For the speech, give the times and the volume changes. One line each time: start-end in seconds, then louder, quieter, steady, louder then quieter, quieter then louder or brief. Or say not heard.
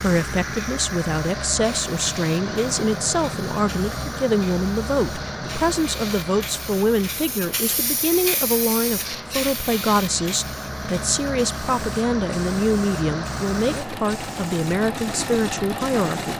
0.0-16.3 steady.